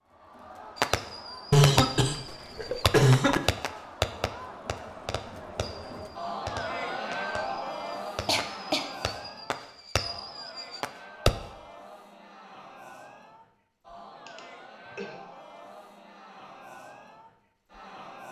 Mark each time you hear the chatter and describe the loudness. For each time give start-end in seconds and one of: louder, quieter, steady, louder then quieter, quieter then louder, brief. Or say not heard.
0.0-18.2 louder then quieter.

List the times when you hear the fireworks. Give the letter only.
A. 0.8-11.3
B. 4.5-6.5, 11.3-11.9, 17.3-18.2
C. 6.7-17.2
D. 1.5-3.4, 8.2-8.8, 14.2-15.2
A.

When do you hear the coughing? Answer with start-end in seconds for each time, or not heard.
1.5-3.4, 8.2-8.8, 14.2-15.2.